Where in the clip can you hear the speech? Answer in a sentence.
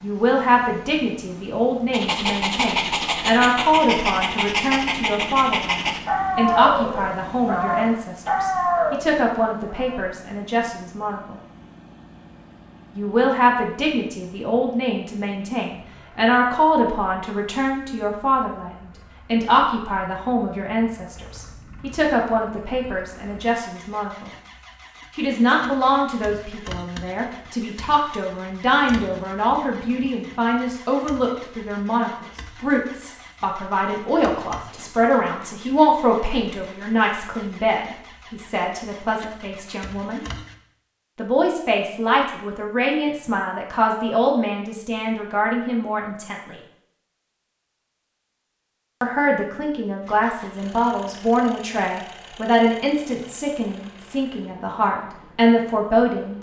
You can hear the speech from 0.0 to 11.4 s, from 12.9 to 24.3 s, from 25.1 to 40.2 s, from 41.1 to 46.5 s and from 49.0 to 56.3 s.